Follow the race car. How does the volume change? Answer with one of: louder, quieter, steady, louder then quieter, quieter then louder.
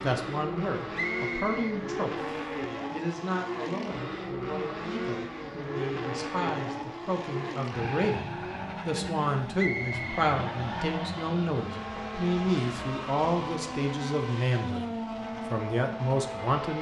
steady.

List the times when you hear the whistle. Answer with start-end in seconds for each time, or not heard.
0.9-2.5, 9.6-10.2.